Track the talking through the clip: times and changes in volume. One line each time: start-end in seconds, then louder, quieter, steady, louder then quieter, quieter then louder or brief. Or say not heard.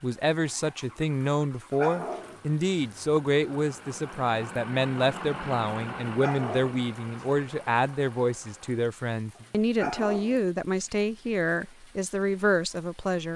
0.0-13.3 steady.